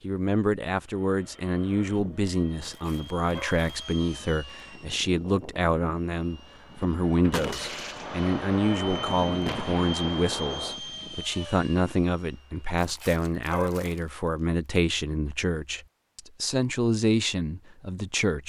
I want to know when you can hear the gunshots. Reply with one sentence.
You can hear the gunshots from 7.3 to 10.8 s.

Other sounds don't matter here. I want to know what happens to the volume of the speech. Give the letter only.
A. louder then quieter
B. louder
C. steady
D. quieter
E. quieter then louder
C.